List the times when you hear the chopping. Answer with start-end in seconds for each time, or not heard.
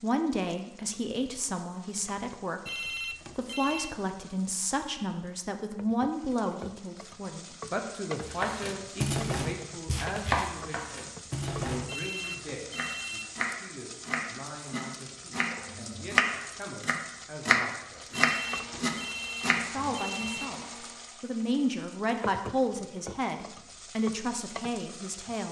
8.2-19.9.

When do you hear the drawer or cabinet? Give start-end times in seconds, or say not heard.
not heard.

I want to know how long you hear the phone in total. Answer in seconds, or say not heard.
5 s.